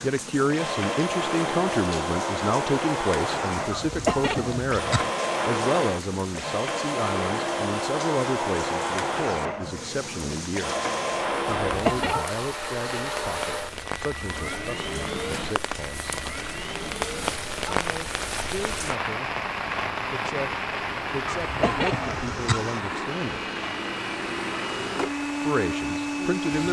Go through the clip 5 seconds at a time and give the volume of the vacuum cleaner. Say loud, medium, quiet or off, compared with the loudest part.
loud, loud, loud, medium, medium, loud.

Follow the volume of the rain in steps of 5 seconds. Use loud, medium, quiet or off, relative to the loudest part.
medium, medium, medium, loud, loud, medium.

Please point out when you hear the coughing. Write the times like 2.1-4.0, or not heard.
3.7-5.1, 11.5-12.2, 21.2-22.6.